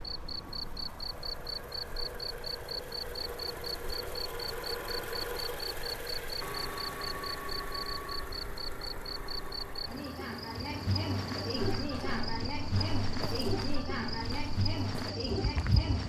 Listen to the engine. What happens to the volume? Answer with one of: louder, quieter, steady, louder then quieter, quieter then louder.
louder then quieter.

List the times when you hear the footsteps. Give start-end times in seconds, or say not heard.
11.6-16.0.